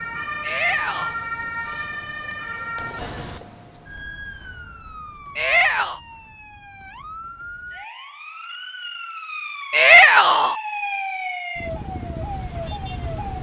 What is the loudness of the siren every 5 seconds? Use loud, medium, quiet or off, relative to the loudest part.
loud, medium, loud.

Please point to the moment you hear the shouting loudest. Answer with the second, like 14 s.
10 s.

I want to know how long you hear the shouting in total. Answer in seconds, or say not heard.
2 s.